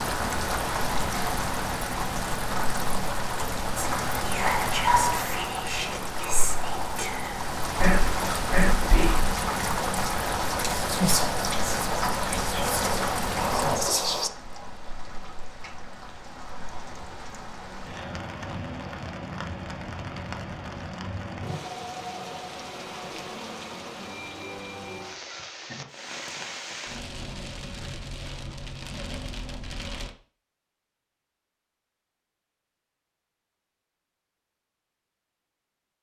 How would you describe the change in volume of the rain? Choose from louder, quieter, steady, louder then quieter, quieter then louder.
quieter.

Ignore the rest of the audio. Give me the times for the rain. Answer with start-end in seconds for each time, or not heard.
0.0-30.1.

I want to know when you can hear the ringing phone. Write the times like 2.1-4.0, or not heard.
not heard.